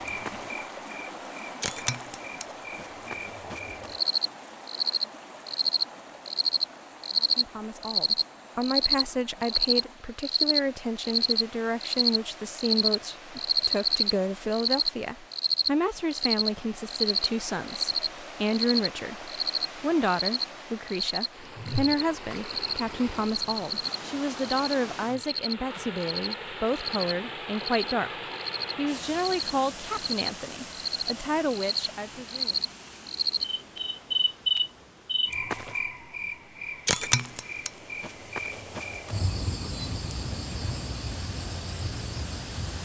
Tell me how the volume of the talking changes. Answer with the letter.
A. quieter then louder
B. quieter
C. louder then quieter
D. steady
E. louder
D.